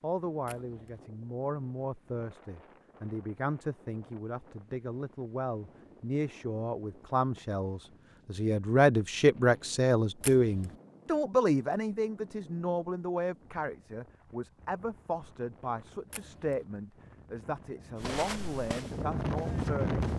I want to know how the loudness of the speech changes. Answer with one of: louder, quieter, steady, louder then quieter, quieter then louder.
louder then quieter.